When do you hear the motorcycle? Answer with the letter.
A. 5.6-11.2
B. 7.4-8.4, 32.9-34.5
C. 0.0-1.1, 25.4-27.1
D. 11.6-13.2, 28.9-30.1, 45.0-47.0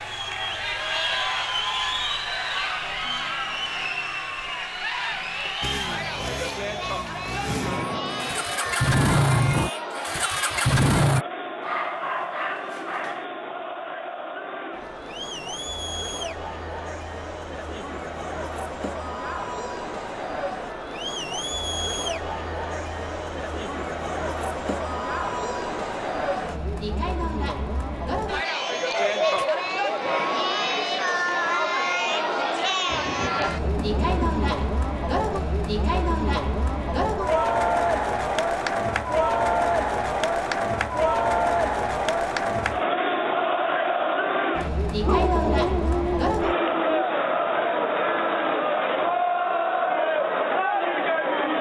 A.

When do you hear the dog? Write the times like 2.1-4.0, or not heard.
11.6-13.2, 28.9-30.1, 45.0-47.0.